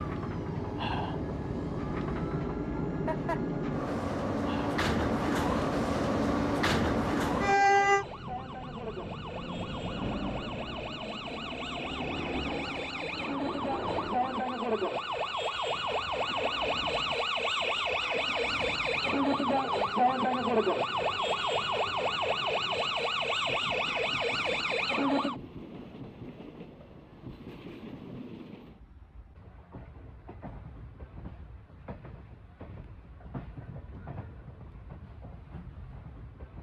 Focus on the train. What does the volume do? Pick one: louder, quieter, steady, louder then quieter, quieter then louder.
quieter.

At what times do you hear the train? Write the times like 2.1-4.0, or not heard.
0.0-36.5.